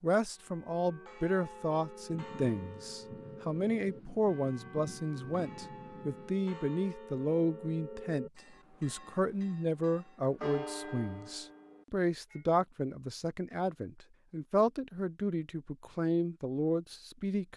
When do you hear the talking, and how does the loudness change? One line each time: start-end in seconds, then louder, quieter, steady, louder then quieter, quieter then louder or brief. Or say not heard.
0.0-17.5 steady.